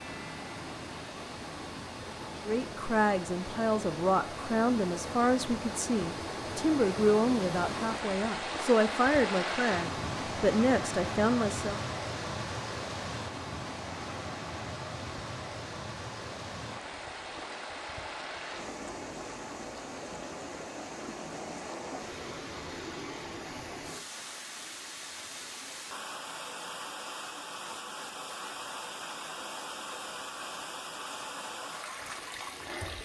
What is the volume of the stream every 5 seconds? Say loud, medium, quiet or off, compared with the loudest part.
medium, loud, loud, medium, medium, medium, medium.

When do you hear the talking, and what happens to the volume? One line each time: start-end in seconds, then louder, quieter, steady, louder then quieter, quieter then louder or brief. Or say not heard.
2.5-11.8 steady.